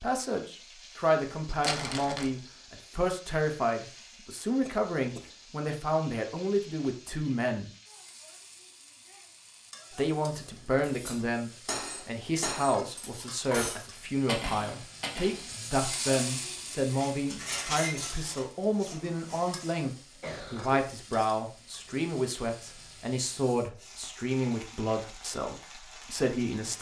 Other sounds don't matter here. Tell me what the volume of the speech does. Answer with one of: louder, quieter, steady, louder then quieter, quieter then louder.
steady.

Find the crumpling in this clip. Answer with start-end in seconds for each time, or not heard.
1.2-2.4.